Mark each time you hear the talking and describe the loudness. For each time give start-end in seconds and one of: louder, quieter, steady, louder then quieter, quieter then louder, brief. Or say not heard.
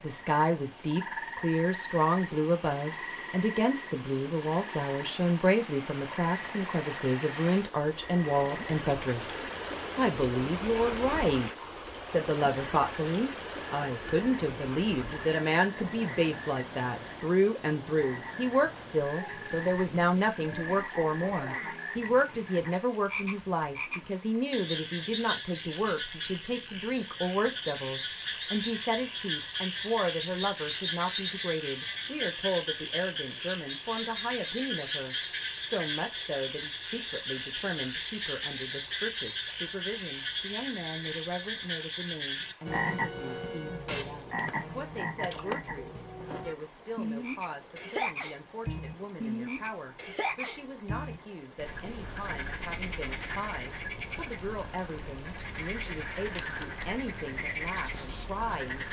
0.0-58.8 quieter.